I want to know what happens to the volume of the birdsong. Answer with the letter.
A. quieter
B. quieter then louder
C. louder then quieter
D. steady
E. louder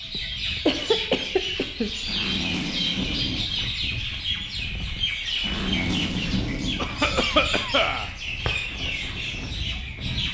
D.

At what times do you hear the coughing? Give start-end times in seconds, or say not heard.
0.1-1.9, 6.8-8.1.